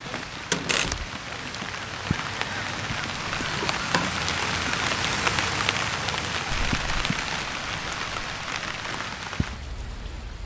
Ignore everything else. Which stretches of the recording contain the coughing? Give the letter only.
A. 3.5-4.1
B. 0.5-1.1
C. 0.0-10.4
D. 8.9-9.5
A.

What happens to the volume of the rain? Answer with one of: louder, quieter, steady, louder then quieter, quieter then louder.
louder then quieter.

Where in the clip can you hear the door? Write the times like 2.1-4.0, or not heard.
0.5-1.1.